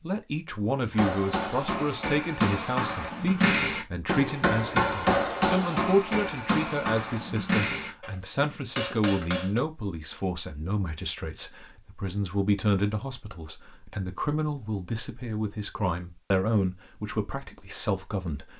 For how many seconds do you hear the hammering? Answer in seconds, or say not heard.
9 s.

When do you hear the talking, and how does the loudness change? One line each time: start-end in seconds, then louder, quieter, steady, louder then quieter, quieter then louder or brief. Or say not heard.
0.0-18.5 steady.